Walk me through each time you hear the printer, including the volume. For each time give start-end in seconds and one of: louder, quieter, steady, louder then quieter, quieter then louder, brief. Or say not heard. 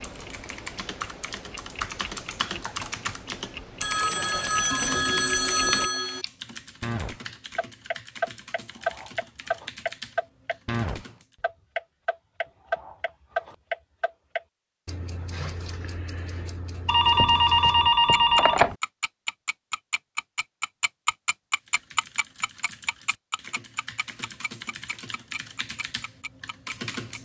not heard.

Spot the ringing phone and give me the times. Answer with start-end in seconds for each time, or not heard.
3.8-6.2, 16.9-18.8.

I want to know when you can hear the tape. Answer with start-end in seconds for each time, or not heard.
not heard.